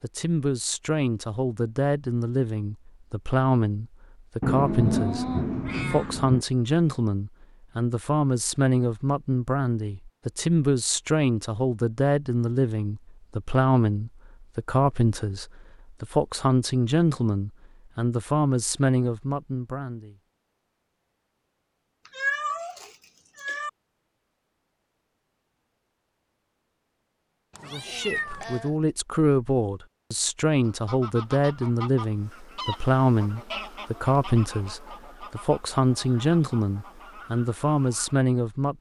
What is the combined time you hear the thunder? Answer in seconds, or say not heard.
2 s.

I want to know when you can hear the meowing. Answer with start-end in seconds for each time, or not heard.
4.5-6.2, 22.1-23.7, 27.6-28.7.